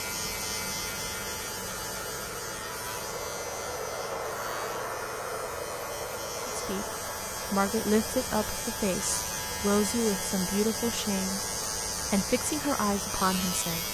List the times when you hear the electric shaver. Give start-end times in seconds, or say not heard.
0.0-13.8.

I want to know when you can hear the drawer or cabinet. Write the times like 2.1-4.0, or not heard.
not heard.